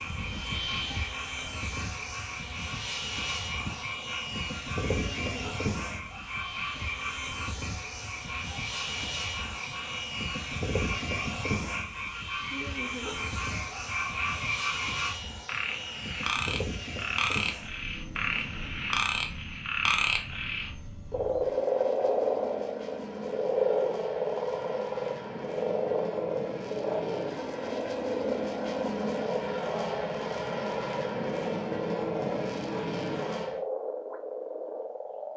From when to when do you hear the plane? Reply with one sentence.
You can hear the plane from 0.0 to 33.6 s.